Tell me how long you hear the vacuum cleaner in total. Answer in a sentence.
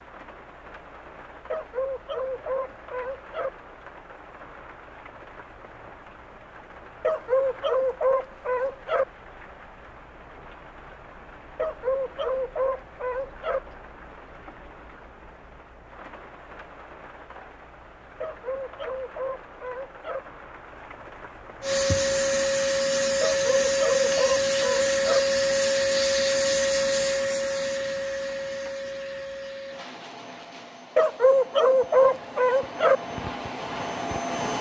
The vacuum cleaner can be heard for 13 seconds in total.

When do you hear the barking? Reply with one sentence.
You can hear the barking from 1.5 to 3.5 s, from 7.0 to 9.1 s, from 11.6 to 13.6 s, from 18.2 to 20.2 s, from 23.2 to 25.2 s and from 30.9 to 33.0 s.